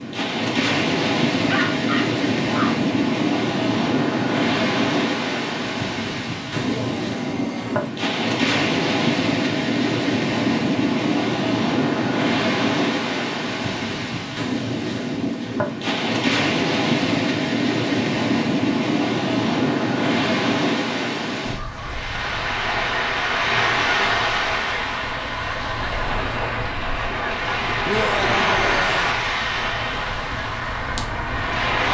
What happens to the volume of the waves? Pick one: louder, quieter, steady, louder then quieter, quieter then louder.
steady.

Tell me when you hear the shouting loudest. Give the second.
28 s.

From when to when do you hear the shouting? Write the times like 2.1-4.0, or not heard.
6.6-7.9, 27.9-29.1.